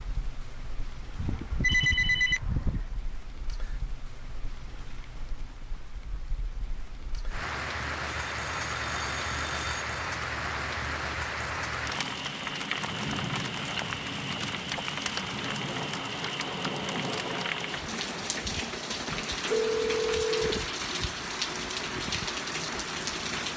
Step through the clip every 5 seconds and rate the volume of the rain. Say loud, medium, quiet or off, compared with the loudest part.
quiet, loud, loud, loud, loud.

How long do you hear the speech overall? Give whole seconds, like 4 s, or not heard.
not heard.